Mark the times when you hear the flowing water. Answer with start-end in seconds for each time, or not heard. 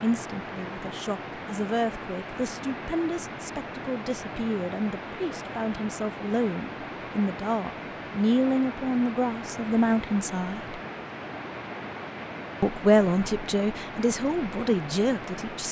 0.0-15.6.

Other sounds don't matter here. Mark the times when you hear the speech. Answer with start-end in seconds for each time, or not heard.
0.0-10.8, 12.6-15.6.